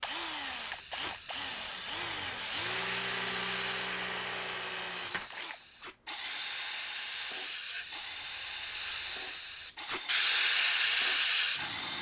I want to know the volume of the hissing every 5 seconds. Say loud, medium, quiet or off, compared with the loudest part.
quiet, medium, loud.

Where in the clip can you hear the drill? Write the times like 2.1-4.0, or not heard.
0.0-11.9.